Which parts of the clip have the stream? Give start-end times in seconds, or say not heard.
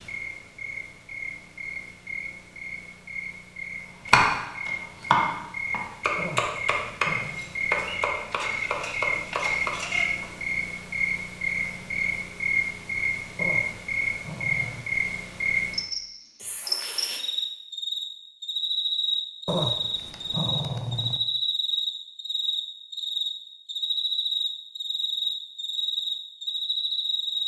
not heard.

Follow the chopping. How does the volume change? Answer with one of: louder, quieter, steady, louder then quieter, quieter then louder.
quieter.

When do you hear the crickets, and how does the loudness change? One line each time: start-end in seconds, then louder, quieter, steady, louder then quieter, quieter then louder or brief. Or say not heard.
0.0-27.4 louder.